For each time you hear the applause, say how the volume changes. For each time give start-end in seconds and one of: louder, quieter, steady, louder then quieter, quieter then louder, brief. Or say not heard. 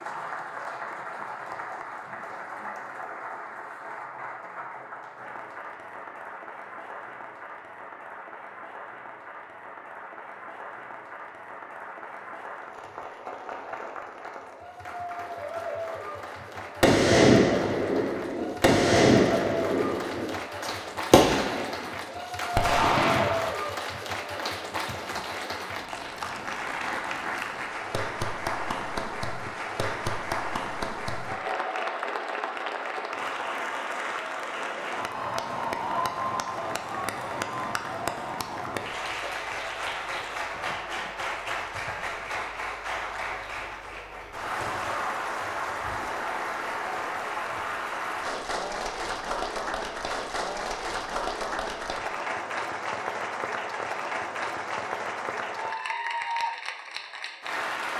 0.0-57.9 louder.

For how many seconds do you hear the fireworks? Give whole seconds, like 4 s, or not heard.
7 s.